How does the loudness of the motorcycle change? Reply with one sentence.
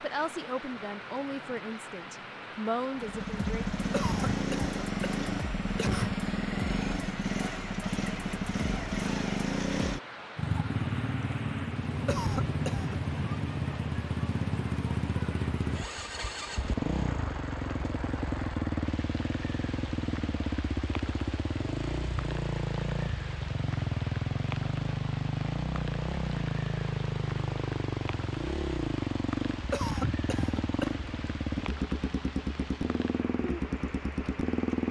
The loudness of the motorcycle stays about the same.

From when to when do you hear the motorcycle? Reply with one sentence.
The motorcycle can be heard from 3.0 to 34.8 s.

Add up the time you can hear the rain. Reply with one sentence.
You can hear the rain for 35 seconds altogether.